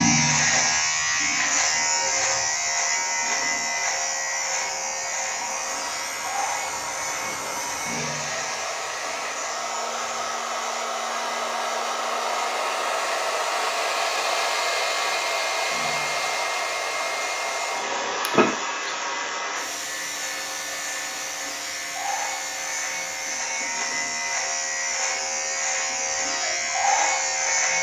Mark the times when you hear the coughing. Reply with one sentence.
The coughing can be heard from 18.2 to 18.9 s.